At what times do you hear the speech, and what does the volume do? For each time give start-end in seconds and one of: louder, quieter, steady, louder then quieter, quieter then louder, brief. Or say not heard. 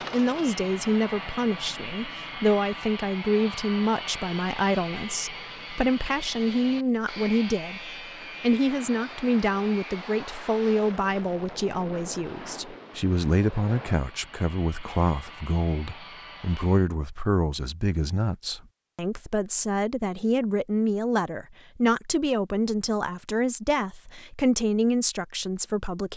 0.1-26.1 steady.